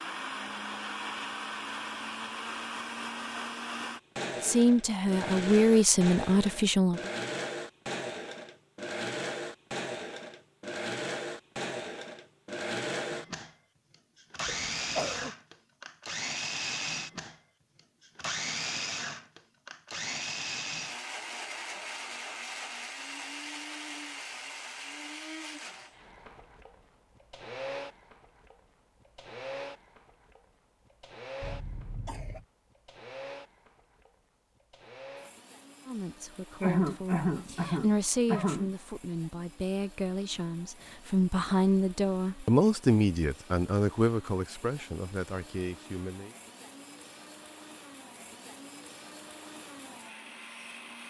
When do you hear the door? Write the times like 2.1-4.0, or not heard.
not heard.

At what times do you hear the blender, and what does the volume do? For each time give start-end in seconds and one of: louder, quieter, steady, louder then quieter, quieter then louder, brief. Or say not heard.
0.0-51.0 quieter.